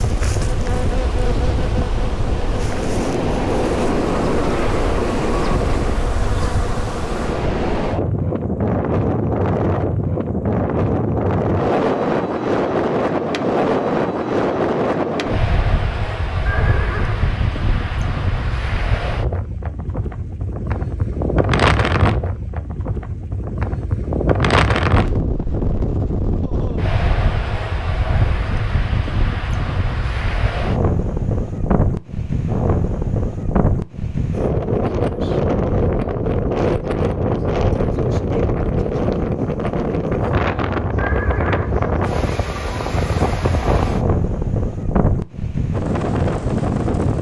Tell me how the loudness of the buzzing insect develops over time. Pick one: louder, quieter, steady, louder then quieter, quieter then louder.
steady.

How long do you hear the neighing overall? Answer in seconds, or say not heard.
2 s.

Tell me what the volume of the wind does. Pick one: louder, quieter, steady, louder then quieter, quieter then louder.
steady.